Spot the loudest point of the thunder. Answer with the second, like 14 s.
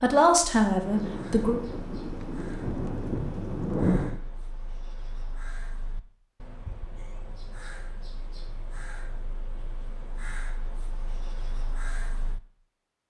4 s.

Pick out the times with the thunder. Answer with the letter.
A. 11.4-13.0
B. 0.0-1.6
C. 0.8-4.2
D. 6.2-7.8
C.